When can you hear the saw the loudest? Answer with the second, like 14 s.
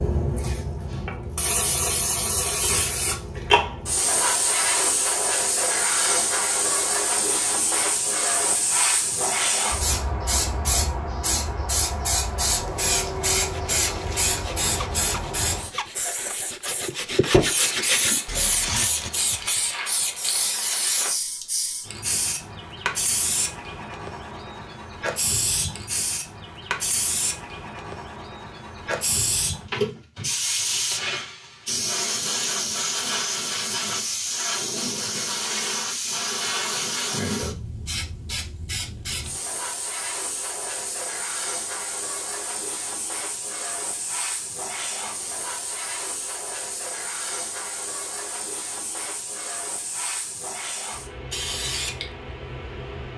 18 s.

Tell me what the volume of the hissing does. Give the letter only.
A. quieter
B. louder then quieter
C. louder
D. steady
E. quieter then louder
A.